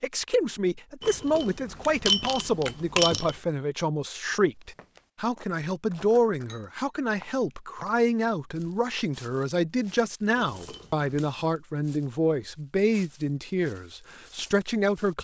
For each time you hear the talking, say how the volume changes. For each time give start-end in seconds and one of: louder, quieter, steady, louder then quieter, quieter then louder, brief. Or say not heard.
0.0-15.1 steady.